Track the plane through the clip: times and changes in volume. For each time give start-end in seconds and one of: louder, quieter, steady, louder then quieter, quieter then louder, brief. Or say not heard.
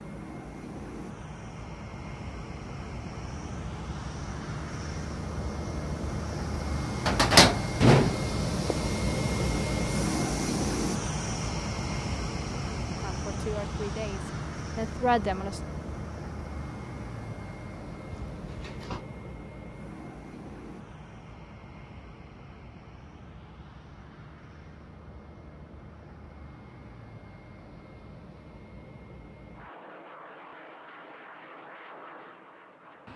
0.0-33.1 louder then quieter.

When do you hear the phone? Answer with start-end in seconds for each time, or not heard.
18.1-19.1.